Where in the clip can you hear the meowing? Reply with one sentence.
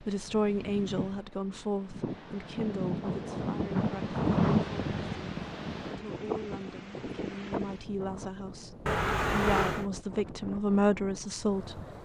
You can hear the meowing from 8.8 to 9.8 s.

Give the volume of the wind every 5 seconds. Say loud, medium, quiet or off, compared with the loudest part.
loud, medium, quiet.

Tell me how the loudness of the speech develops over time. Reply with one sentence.
The volume of the speech goes down, then up.